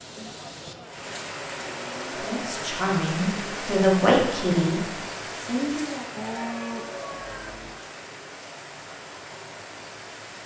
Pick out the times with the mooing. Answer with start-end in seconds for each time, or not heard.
0.2-2.2, 6.2-7.8.